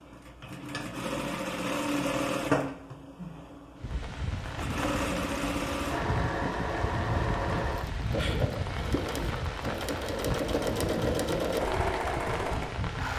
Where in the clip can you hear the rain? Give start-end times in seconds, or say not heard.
3.8-13.1.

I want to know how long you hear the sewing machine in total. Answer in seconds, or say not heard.
13 s.